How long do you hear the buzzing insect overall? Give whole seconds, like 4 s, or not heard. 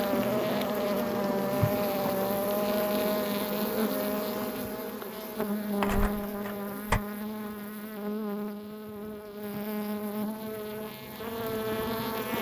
12 s.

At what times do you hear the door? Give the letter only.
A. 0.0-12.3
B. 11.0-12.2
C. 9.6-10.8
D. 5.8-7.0
D.